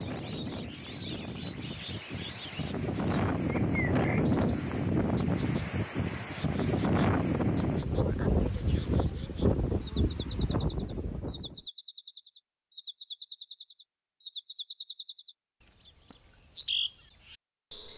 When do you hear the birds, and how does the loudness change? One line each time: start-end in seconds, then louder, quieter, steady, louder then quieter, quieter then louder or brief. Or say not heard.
0.0-17.9 louder.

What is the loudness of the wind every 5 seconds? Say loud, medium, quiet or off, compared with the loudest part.
loud, loud, medium, off.